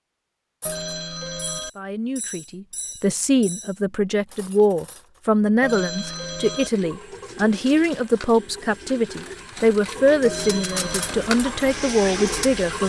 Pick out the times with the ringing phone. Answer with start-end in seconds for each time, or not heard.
0.7-1.7, 5.6-6.7, 10.2-11.2.